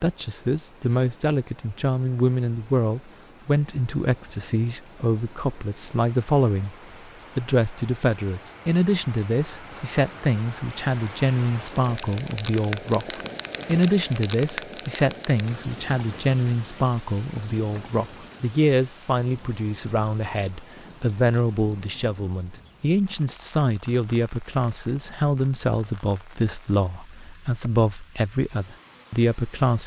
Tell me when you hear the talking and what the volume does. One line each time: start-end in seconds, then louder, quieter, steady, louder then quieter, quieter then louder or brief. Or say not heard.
0.0-6.8 steady
7.3-29.8 steady.